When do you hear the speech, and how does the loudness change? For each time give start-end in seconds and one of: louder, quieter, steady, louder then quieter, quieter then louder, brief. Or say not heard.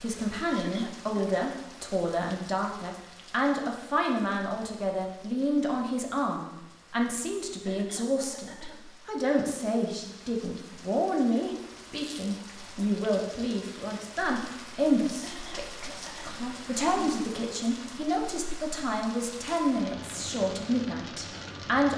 0.0-21.9 steady.